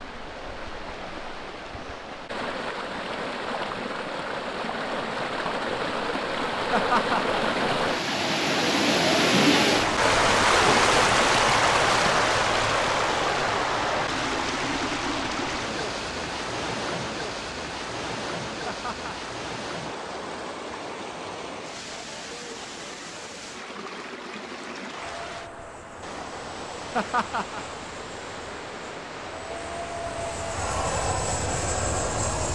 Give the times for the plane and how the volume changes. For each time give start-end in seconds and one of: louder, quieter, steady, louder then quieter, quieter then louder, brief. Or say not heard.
25.0-32.5 louder.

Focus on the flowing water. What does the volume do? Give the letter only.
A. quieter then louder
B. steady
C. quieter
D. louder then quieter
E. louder
D.